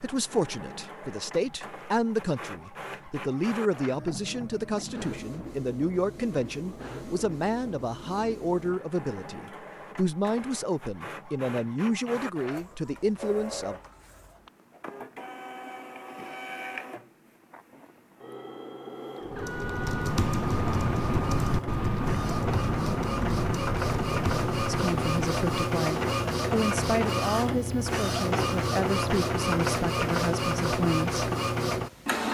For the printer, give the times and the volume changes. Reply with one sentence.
The printer can be heard from 0.0 to 32.2 s, getting louder.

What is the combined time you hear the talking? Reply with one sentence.
You can hear the talking for 20 seconds altogether.